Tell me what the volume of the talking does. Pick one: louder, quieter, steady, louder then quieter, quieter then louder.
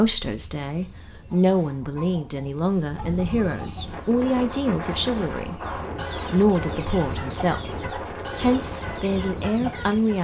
steady.